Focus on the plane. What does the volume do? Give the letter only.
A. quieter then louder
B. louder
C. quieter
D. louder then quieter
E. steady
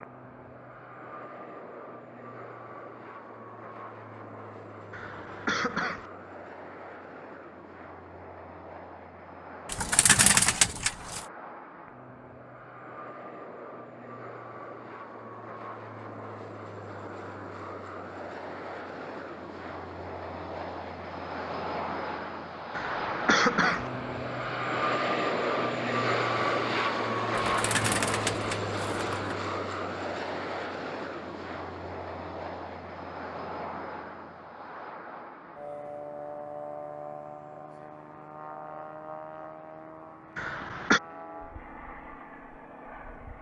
D.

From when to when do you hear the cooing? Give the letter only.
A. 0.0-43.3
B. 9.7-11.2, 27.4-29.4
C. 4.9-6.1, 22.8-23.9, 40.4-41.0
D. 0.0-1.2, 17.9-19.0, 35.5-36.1
B.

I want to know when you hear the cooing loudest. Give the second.
10 s.